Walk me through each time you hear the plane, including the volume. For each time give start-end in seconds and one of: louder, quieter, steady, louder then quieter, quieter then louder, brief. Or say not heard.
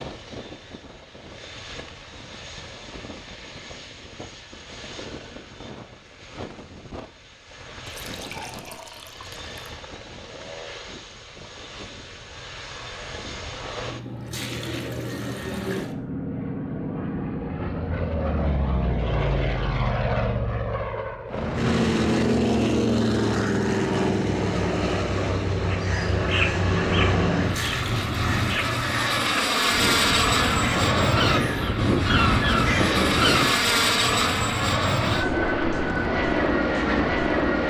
0.0-37.6 louder.